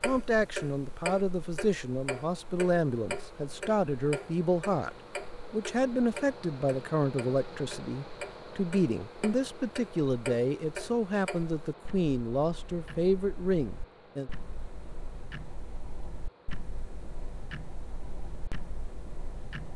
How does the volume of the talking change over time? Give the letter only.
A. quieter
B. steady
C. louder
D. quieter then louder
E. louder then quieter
B.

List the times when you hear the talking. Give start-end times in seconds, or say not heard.
0.0-4.9, 5.5-14.3.